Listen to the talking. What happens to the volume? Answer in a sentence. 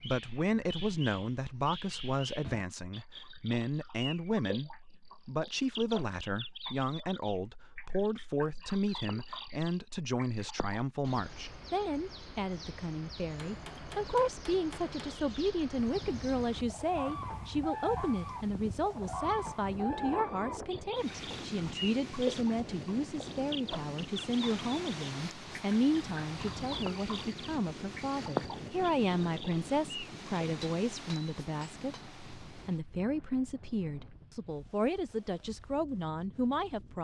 The loudness of the talking stays about the same.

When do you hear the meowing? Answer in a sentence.
The meowing can't be heard in this clip.